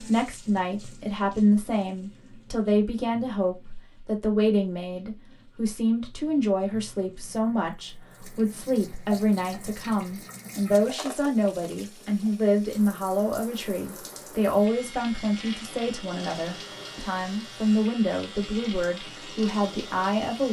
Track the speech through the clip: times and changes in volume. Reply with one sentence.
The speech can be heard from 0.0 to 20.4 s, at a steady volume.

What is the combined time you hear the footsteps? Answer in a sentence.
You can't hear the footsteps here.